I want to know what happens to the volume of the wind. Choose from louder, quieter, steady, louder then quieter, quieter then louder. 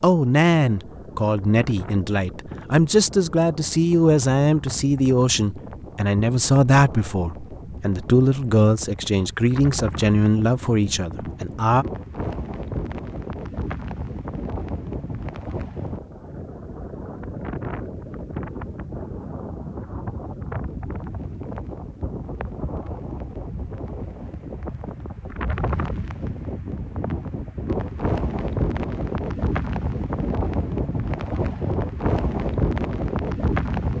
louder.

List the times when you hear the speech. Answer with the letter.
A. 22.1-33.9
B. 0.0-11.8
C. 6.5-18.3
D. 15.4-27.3
B.